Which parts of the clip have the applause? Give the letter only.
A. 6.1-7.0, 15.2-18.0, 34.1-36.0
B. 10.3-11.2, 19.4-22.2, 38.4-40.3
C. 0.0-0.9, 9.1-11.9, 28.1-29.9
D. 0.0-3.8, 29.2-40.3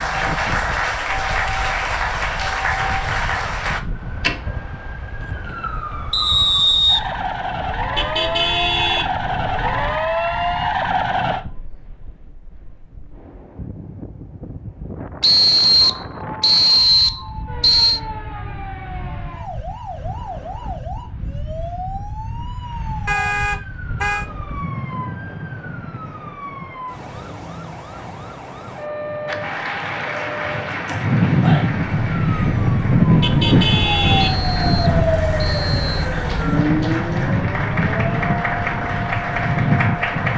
D.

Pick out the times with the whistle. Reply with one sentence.
You can hear the whistle from 6.1 to 7.0 s, from 15.2 to 18.0 s and from 34.1 to 36.0 s.